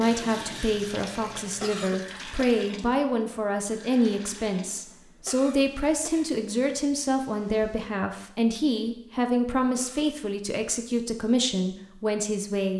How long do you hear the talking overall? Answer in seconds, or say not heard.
13 s.